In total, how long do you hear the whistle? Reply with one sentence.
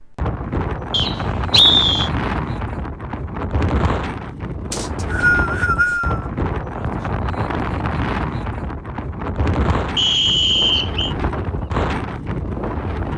You can hear the whistle for 4 seconds altogether.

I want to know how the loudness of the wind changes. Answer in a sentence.
The loudness of the wind stays about the same.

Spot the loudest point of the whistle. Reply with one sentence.
The volume of the whistle peaks at 2 seconds.